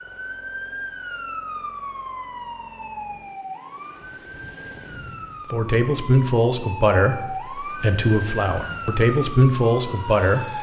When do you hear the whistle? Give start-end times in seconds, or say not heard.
not heard.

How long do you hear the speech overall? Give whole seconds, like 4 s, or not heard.
5 s.